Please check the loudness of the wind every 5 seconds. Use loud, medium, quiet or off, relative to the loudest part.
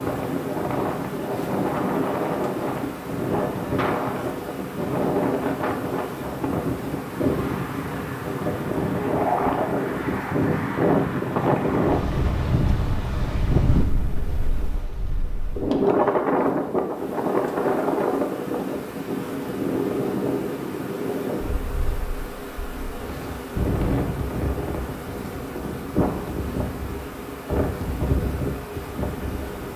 loud, loud, loud, loud, medium, medium.